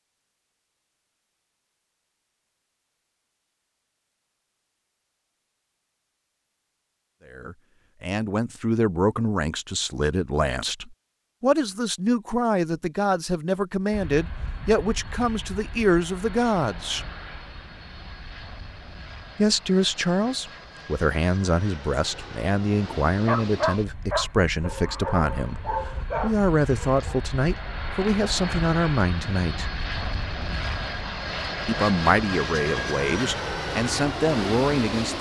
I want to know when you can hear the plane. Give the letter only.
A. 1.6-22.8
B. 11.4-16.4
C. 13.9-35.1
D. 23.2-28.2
C.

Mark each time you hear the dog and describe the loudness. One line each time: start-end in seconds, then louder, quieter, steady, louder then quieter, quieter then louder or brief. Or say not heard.
23.2-28.2 quieter.